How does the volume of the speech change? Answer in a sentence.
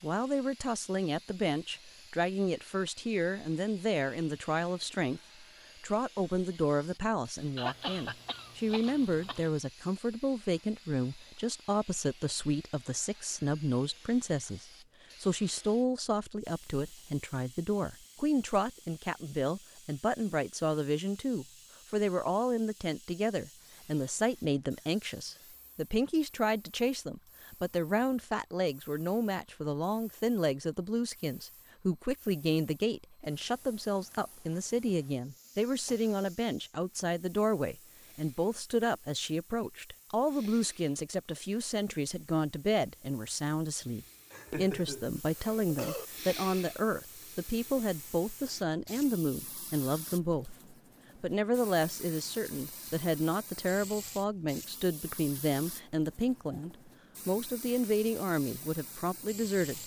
The loudness of the speech stays about the same.